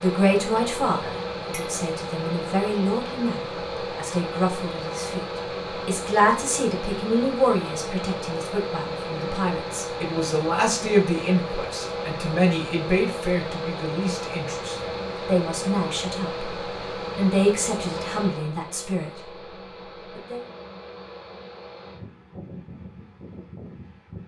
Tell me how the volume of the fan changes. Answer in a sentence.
The loudness of the fan goes down.